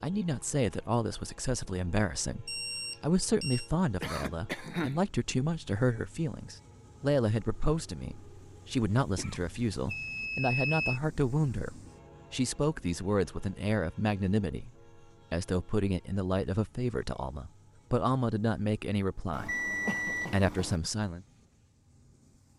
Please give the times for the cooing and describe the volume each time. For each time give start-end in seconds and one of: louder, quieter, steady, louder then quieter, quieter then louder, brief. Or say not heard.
not heard.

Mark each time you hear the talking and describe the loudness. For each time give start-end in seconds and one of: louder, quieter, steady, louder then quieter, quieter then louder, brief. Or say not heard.
0.0-14.7 steady
15.3-19.6 quieter then louder
20.3-21.2 brief.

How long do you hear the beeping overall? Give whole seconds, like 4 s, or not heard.
4 s.